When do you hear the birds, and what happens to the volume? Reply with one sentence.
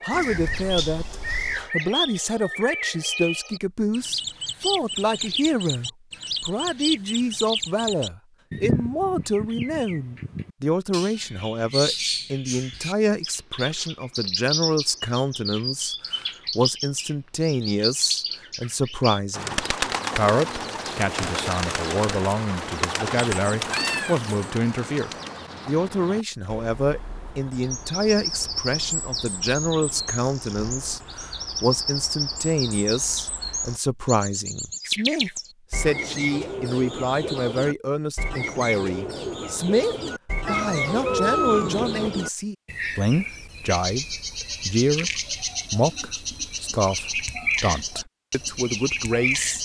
The birds can be heard from 0.0 to 49.5 s, at a steady volume.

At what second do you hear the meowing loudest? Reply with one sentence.
The volume of the meowing peaks at 41 seconds.